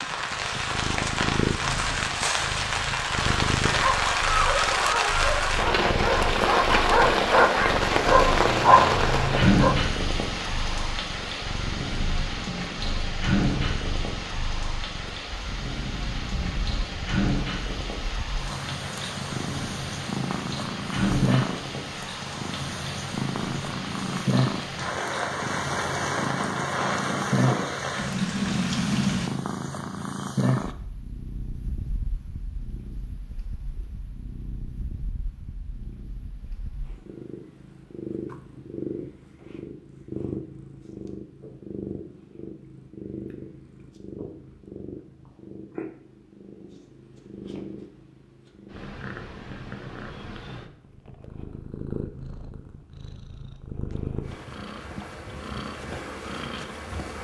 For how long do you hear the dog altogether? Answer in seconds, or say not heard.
6 s.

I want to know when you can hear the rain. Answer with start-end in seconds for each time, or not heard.
0.0-29.3.